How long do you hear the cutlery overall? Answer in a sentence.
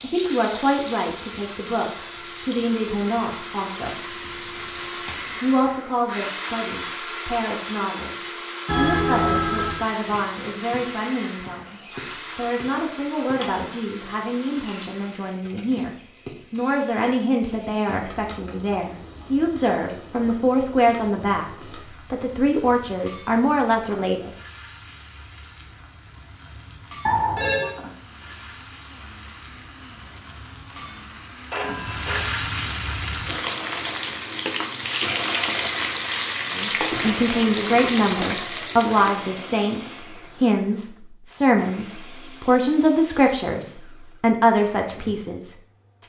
You can't hear the cutlery here.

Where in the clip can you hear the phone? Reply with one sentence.
The phone can be heard from 8.7 to 9.9 s, from 27.1 to 27.7 s and from 31.5 to 32.2 s.